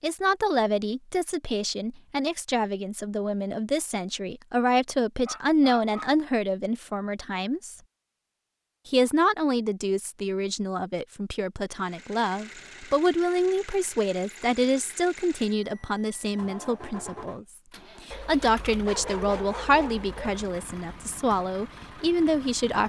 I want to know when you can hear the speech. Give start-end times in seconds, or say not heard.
0.0-7.8, 8.8-17.4, 18.1-22.8.